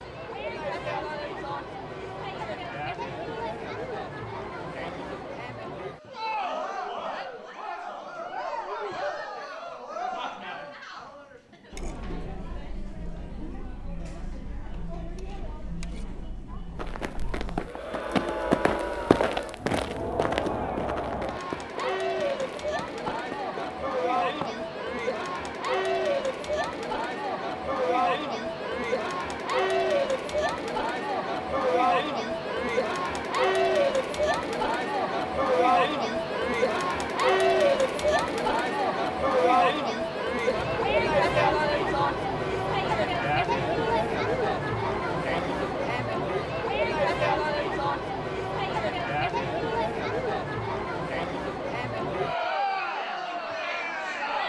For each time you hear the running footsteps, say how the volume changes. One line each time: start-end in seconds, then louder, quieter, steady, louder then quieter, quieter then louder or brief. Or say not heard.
16.8-24.6 quieter.